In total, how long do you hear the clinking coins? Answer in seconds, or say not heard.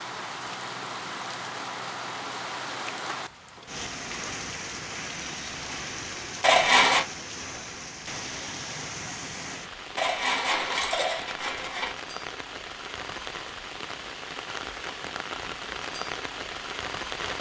3 s.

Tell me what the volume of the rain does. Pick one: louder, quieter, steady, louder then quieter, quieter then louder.
steady.